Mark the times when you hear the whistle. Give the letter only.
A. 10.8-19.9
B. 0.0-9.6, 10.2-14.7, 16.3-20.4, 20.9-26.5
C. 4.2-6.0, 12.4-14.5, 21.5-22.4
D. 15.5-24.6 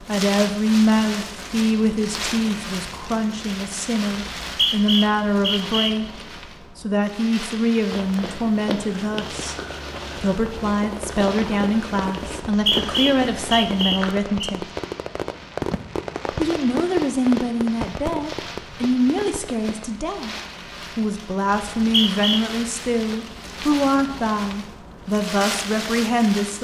C.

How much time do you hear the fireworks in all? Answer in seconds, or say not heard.
9 s.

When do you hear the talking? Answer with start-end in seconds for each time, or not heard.
0.0-9.6, 10.2-14.7, 16.3-20.4, 20.9-26.5.